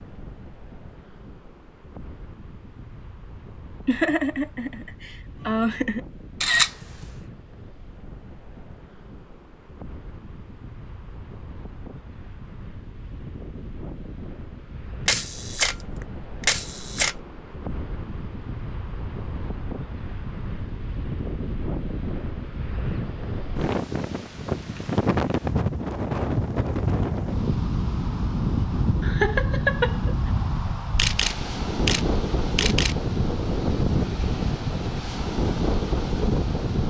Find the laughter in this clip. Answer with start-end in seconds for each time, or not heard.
3.9-6.0, 29.0-30.3.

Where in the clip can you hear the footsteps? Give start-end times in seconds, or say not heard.
not heard.